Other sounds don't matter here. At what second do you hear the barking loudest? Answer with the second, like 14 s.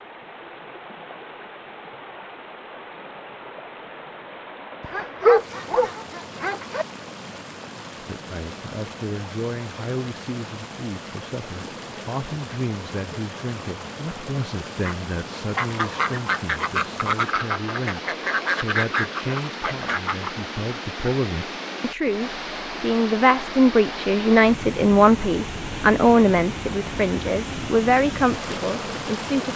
5 s.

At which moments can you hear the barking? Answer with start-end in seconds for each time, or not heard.
4.8-6.8.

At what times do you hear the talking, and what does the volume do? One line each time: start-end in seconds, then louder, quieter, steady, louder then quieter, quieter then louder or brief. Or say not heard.
8.0-29.5 louder.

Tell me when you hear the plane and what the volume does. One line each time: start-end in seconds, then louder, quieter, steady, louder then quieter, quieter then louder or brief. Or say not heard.
not heard.